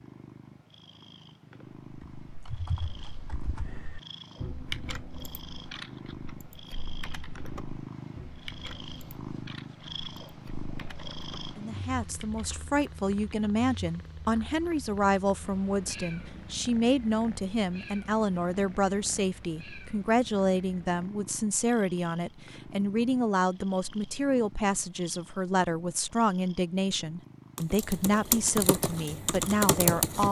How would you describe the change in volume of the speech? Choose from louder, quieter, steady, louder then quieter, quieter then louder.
steady.